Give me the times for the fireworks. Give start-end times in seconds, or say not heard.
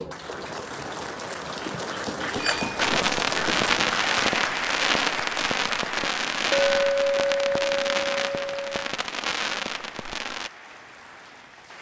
2.8-10.5.